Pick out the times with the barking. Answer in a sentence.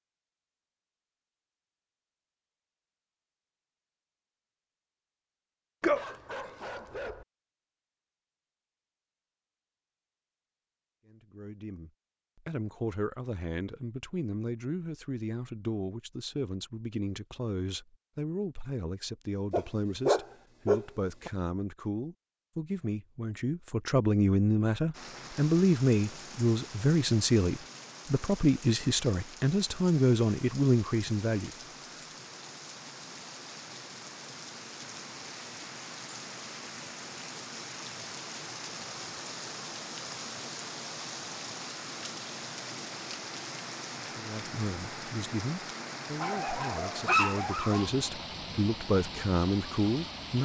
You can hear the barking from 5.8 to 7.2 s, from 19.5 to 21.3 s and from 46.2 to 47.9 s.